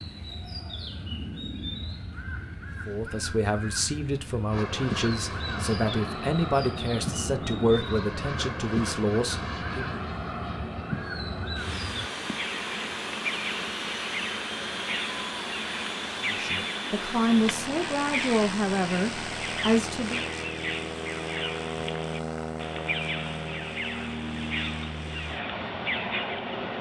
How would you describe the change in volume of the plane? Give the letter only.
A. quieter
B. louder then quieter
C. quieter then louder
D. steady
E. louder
D.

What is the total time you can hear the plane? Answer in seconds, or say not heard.
22 s.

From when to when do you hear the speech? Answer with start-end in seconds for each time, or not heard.
2.9-10.0, 16.2-20.2.